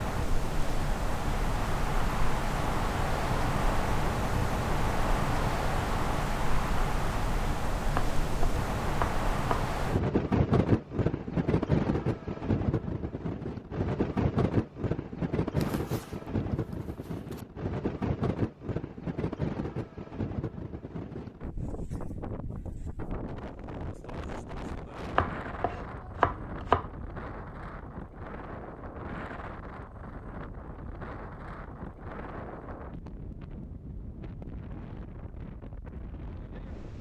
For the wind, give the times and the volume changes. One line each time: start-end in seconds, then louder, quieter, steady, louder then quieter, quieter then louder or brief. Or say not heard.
0.0-36.9 quieter.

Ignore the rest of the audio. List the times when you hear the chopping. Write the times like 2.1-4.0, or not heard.
8.0-9.7, 25.1-26.9.